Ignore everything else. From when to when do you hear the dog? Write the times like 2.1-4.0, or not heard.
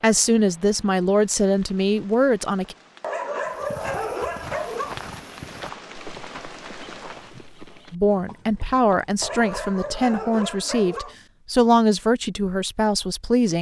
3.0-5.0, 9.2-11.2.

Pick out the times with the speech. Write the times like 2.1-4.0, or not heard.
0.0-2.8, 7.9-13.5.